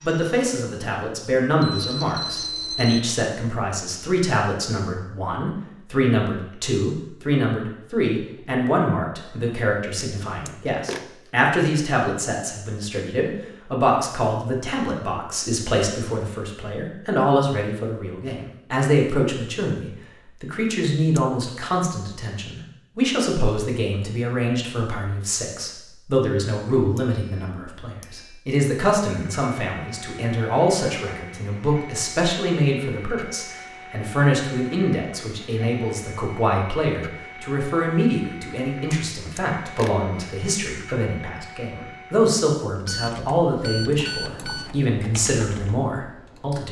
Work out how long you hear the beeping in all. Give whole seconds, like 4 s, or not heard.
5 s.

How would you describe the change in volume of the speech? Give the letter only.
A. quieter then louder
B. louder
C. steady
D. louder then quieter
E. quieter
C.